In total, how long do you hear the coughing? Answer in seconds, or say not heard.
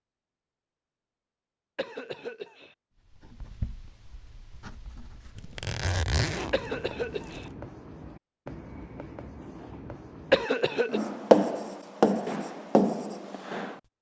3 s.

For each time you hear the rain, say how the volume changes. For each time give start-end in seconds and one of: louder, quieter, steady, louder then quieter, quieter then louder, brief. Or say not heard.
not heard.